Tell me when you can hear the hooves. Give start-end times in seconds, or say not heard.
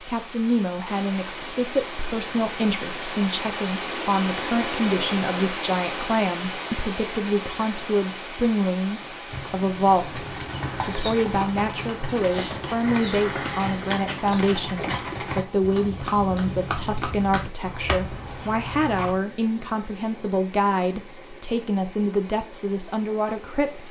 9.3-19.2.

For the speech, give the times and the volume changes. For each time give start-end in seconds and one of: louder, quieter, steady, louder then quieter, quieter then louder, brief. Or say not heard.
0.0-23.8 steady.